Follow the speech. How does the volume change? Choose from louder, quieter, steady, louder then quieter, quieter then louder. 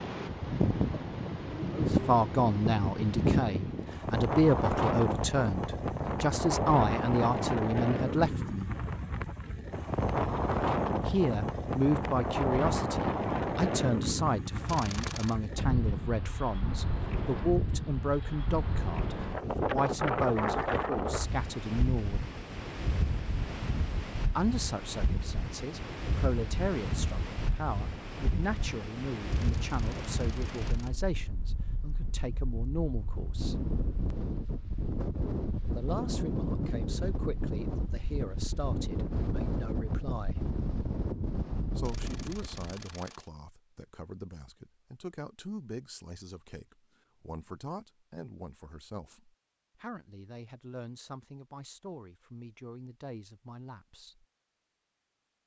quieter.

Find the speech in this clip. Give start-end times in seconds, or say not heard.
1.7-8.7, 11.1-22.2, 24.4-33.5, 35.8-40.5, 41.8-54.2.